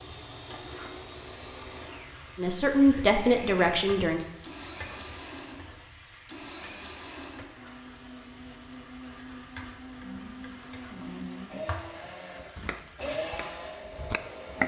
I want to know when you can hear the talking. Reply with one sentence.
You can hear the talking from 2.4 to 4.2 s.